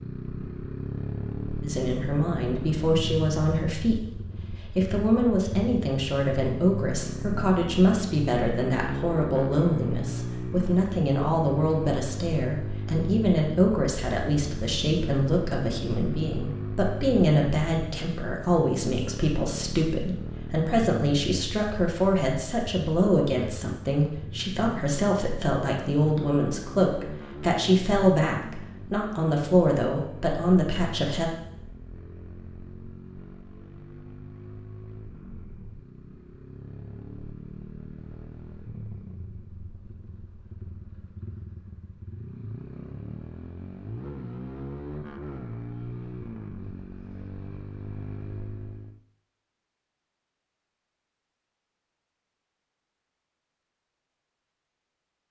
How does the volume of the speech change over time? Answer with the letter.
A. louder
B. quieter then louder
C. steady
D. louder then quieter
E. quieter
C.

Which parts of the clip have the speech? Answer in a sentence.
The speech can be heard from 1.6 to 31.3 s.